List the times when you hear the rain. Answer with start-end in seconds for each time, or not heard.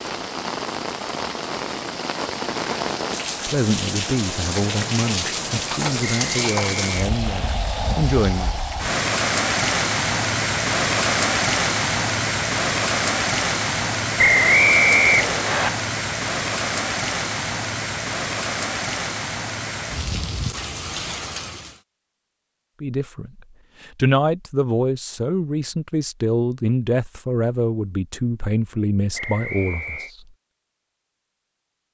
0.0-21.8.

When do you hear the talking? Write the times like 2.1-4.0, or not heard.
3.5-8.5, 22.8-30.2.